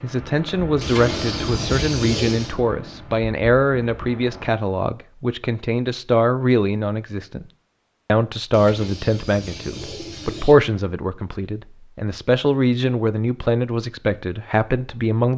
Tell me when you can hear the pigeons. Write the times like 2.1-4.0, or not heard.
0.8-2.5, 8.5-10.6.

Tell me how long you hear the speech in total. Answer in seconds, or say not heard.
15 s.